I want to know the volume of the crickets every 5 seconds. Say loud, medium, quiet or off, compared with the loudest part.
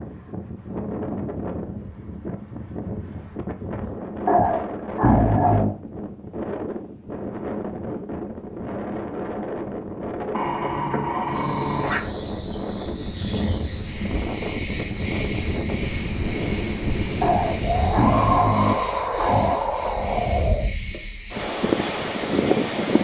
off, off, loud, medium, medium.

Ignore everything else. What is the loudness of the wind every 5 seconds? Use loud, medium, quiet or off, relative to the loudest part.
medium, medium, medium, loud, loud.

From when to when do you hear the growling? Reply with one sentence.
The growling can be heard from 4.2 to 5.8 s, from 10.3 to 12.0 s and from 17.2 to 19.6 s.